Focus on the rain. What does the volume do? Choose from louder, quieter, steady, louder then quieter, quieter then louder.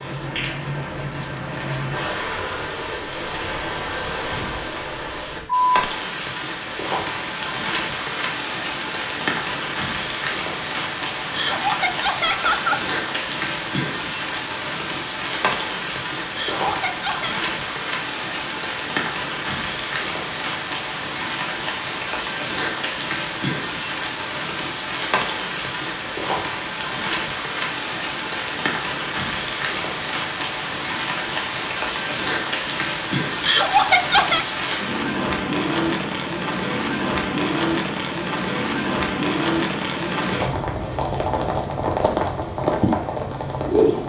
steady.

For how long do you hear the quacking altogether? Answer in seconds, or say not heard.
not heard.